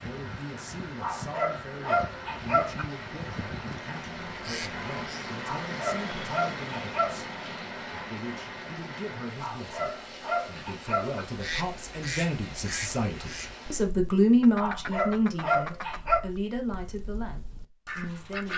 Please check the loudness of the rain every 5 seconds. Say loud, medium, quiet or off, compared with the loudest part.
loud, loud, medium, off.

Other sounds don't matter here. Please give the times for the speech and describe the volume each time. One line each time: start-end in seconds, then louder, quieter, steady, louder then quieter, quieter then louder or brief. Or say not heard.
0.0-18.5 louder then quieter.